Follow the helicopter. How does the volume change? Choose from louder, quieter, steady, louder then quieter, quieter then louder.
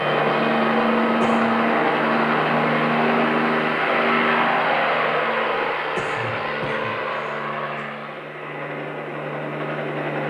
quieter.